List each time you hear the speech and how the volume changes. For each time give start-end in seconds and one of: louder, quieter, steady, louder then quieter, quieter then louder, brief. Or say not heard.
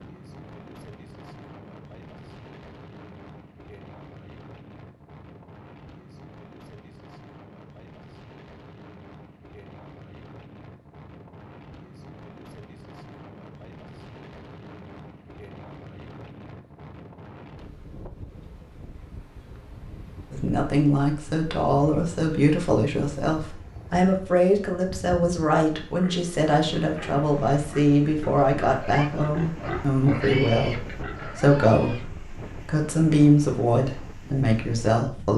20.3-35.3 steady.